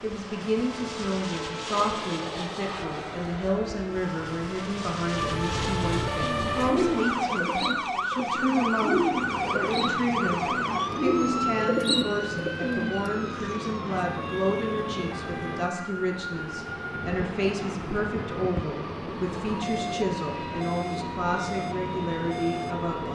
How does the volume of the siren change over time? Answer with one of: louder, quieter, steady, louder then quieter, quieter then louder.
louder then quieter.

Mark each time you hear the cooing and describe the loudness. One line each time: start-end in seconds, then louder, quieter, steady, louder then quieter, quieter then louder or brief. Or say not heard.
6.2-13.1 steady.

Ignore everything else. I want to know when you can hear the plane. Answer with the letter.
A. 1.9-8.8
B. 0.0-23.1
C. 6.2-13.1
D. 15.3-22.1
B.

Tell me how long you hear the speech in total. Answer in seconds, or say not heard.
23 s.